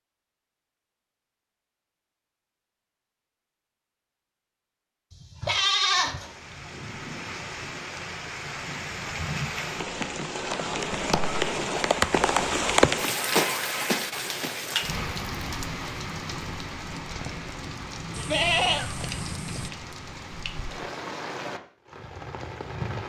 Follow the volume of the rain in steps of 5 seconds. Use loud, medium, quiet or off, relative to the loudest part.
off, medium, loud, medium, medium.